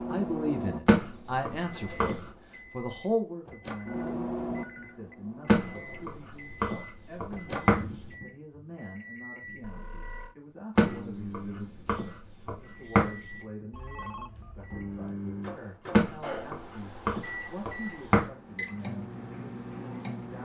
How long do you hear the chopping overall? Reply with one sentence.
You can hear the chopping for 9 seconds altogether.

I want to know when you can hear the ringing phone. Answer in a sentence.
The ringing phone can be heard from 3.8 to 5.2 s, from 9.6 to 10.3 s and from 13.7 to 15.2 s.